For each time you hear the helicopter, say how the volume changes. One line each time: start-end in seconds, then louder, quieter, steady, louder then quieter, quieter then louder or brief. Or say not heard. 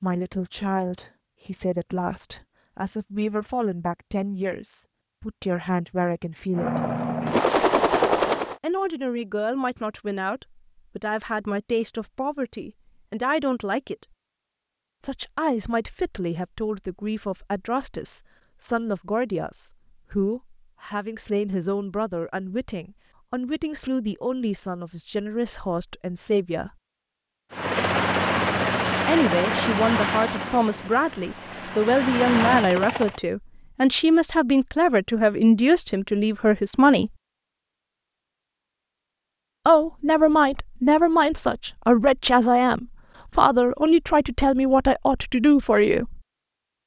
6.5-8.6 brief
27.5-33.2 quieter then louder.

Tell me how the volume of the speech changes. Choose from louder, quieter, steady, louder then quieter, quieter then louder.
louder.